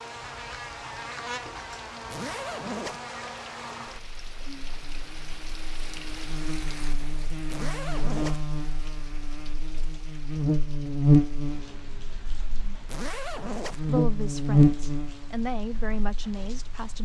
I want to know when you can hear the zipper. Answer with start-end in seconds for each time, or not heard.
2.1-3.0, 7.5-8.4, 12.8-13.8.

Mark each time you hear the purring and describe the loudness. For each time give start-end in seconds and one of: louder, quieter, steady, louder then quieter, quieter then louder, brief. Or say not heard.
not heard.